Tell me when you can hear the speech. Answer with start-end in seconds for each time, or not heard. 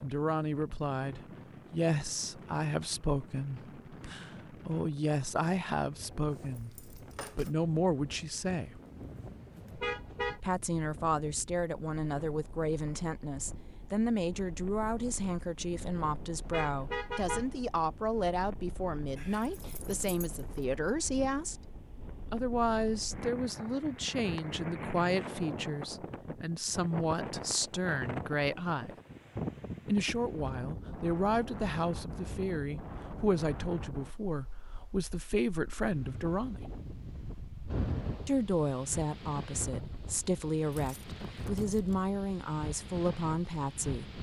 0.0-8.8, 10.4-21.7, 22.3-28.9, 29.9-36.6, 38.2-44.1.